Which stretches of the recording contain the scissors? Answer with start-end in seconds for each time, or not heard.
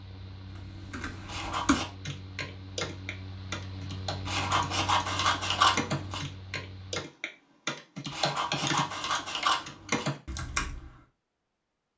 1.2-1.9, 4.2-6.2, 8.1-10.1.